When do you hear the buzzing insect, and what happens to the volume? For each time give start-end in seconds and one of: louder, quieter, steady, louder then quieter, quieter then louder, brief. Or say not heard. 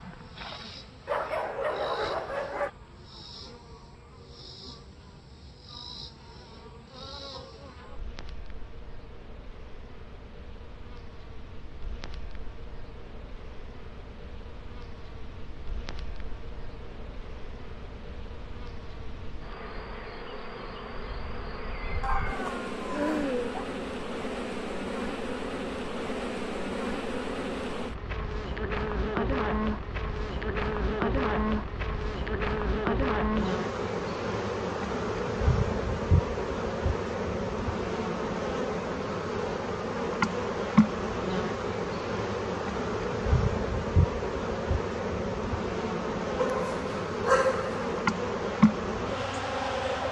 0.0-50.0 louder.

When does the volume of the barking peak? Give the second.
47 s.